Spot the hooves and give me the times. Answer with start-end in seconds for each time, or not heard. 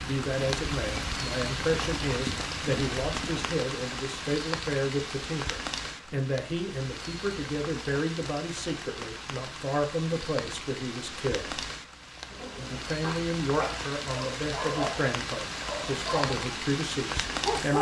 0.0-3.5.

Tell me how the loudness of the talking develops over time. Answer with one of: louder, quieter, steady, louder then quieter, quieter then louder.
steady.